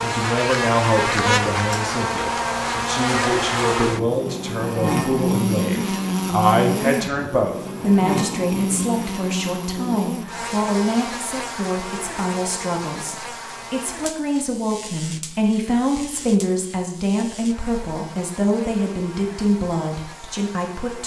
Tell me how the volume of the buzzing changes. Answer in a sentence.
The loudness of the buzzing goes down.